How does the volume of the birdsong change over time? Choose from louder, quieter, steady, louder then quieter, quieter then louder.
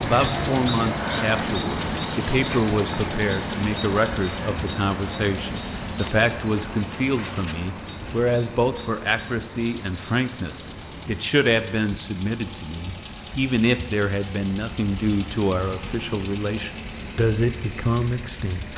quieter.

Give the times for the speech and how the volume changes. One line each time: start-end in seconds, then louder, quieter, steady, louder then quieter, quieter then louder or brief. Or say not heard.
0.0-18.7 steady.